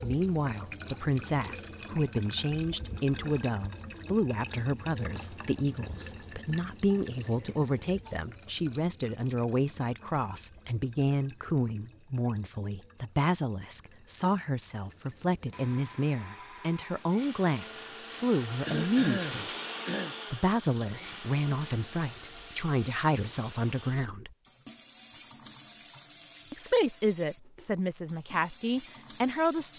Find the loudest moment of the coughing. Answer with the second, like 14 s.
19 s.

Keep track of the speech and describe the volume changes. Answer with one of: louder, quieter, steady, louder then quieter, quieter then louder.
steady.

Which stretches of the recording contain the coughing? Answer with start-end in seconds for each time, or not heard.
7.2-8.3, 18.6-20.1.